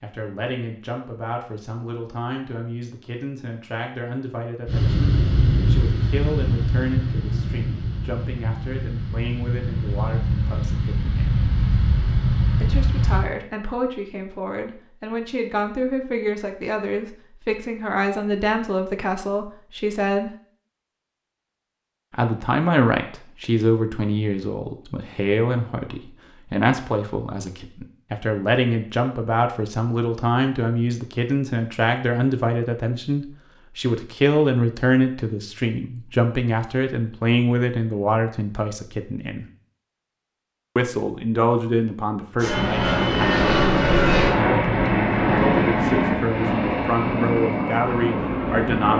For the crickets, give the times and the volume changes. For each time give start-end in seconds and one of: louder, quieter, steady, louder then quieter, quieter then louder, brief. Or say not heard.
not heard.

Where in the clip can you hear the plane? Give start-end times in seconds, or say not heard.
4.7-13.3, 42.4-48.9.